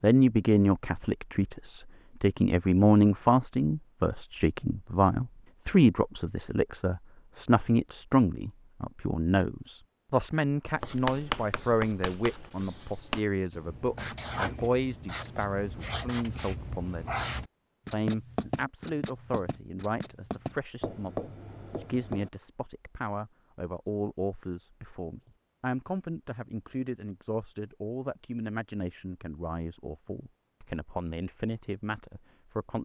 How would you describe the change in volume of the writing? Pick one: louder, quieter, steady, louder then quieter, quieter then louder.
steady.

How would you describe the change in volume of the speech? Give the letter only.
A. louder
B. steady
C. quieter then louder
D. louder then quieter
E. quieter
E.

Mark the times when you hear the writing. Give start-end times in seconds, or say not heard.
10.8-22.3.